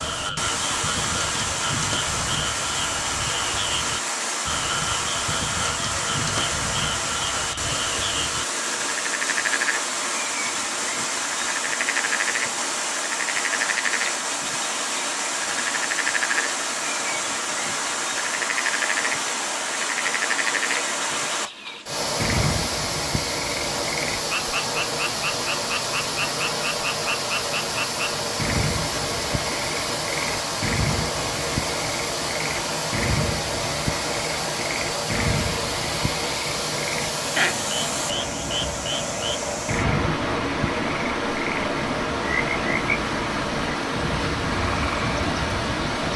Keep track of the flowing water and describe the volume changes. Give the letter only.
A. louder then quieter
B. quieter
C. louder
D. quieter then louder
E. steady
E.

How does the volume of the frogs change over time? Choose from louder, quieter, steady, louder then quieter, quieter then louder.
steady.